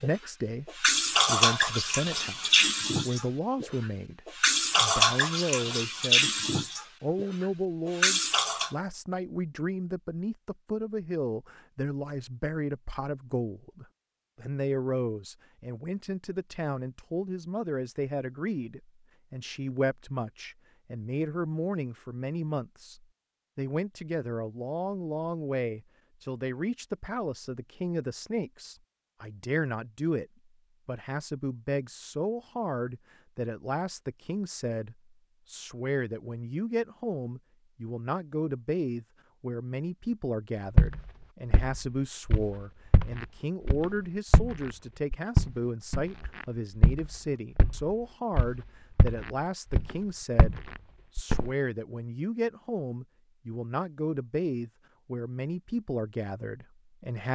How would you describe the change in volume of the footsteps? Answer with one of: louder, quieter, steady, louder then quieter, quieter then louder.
louder then quieter.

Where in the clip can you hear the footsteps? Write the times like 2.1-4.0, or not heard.
40.8-51.5.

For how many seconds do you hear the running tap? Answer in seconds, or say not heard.
9 s.